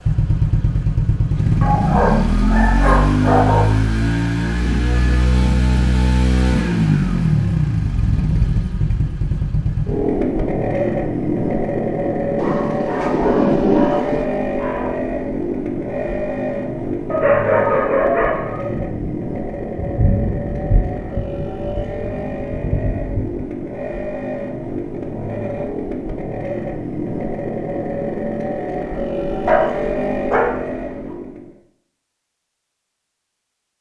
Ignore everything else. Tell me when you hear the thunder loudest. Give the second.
14 s.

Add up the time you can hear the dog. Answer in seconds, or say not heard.
7 s.